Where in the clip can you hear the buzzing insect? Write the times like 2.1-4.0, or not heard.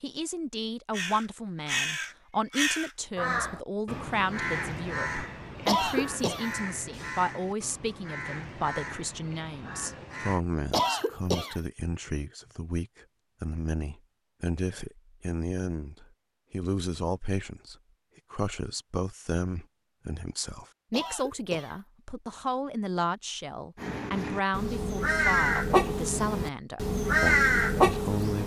not heard.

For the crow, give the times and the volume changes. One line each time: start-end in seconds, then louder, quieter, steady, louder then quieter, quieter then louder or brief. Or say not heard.
0.9-10.4 quieter
23.8-28.4 louder.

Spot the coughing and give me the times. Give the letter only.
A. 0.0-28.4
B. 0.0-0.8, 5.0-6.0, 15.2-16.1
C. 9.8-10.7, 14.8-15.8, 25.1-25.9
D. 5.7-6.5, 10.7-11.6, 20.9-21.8
D.